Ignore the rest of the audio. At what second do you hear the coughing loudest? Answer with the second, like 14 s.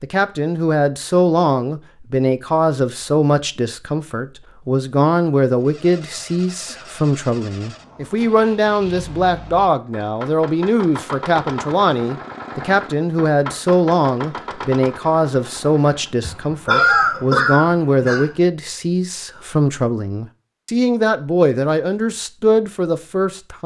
17 s.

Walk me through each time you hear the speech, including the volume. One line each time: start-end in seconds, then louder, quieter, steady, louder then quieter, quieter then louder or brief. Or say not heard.
0.0-23.6 steady.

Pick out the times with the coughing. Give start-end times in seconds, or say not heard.
16.2-18.3.